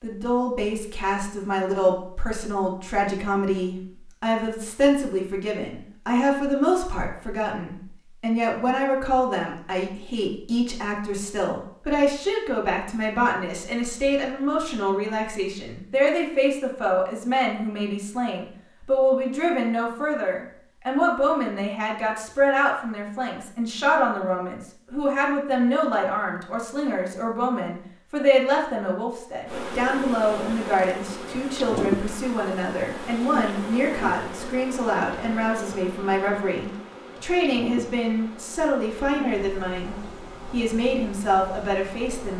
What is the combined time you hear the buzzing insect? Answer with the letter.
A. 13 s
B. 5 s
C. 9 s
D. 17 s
A.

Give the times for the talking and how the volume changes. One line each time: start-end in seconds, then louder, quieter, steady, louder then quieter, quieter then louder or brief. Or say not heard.
0.0-42.3 steady.